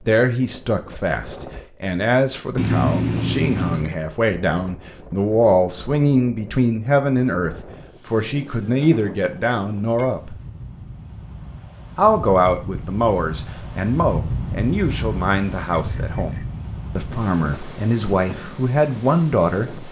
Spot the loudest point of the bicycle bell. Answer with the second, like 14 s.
3 s.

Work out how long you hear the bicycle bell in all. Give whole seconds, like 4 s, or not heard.
4 s.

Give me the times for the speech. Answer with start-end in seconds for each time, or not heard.
0.1-10.3, 11.9-16.4, 16.9-19.8.